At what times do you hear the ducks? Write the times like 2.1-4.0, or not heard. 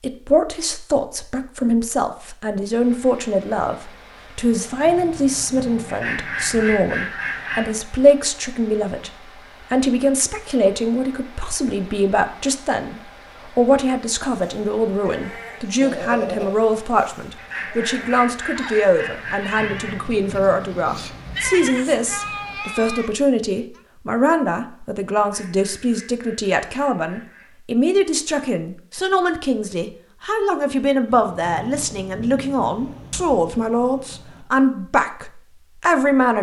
5.8-7.8, 17.4-20.0, 25.2-27.5.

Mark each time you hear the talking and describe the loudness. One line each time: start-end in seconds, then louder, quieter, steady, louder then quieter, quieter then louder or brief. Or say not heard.
0.0-36.3 steady.